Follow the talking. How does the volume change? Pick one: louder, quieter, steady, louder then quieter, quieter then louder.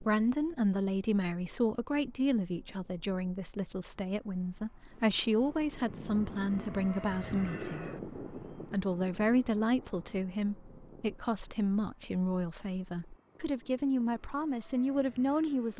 steady.